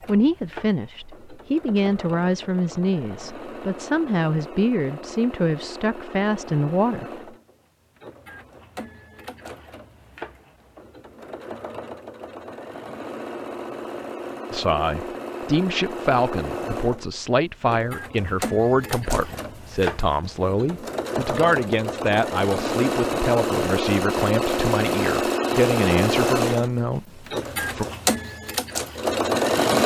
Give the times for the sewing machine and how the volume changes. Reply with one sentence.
The sewing machine can be heard from 0.0 to 29.8 s, getting louder.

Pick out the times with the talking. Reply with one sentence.
The talking can be heard from 0.1 to 7.0 s and from 14.5 to 27.9 s.